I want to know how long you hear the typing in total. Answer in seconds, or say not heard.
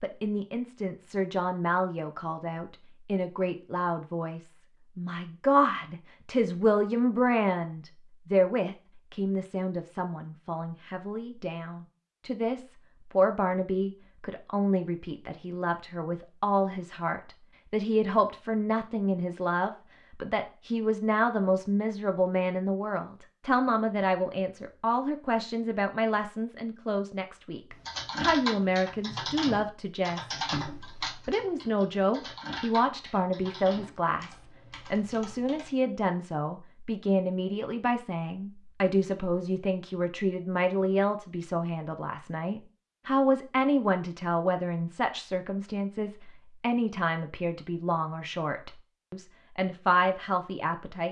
8 s.